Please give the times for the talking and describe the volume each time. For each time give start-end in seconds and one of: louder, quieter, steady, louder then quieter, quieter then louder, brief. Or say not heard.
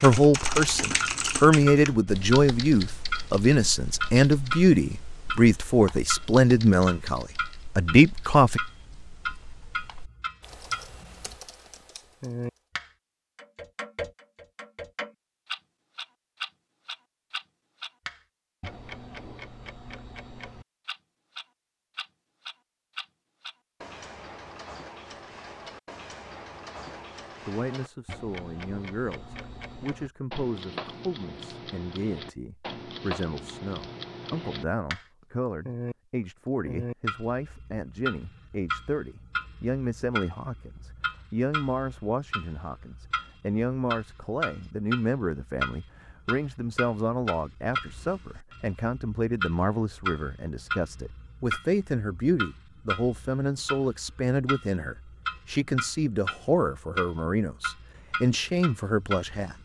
0.0-8.6 steady
26.9-59.5 louder.